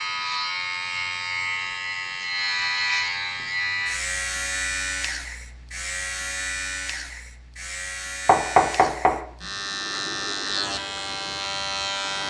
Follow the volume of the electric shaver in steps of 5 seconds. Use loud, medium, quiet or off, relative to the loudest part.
loud, medium, loud.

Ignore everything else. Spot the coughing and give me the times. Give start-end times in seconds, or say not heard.
not heard.